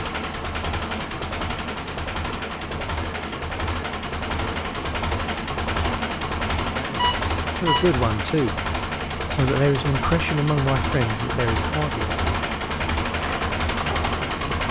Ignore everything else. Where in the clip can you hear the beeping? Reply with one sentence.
The beeping can be heard from 7.0 to 8.0 s.